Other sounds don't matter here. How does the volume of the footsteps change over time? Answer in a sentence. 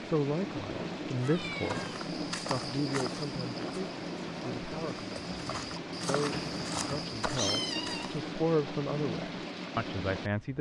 The loudness of the footsteps goes down, then up.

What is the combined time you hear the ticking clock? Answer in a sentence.
You can't hear the ticking clock here.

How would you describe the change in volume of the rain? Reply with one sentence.
The loudness of the rain stays about the same.